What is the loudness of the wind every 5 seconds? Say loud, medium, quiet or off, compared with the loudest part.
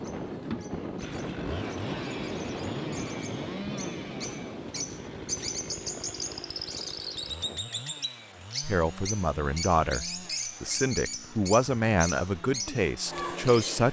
loud, medium, off.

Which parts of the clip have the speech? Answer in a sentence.
You can hear the speech from 8.6 to 13.8 s.